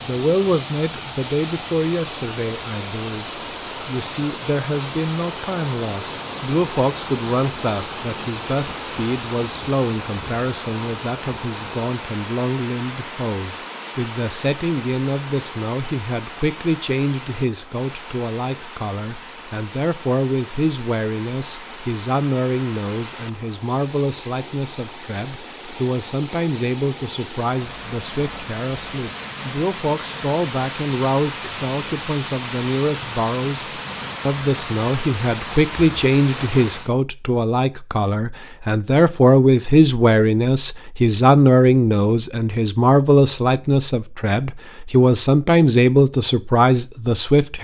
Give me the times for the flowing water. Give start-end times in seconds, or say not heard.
0.0-37.0.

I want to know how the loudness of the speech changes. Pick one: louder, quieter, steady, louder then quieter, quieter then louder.
louder.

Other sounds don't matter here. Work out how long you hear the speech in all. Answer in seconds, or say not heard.
47 s.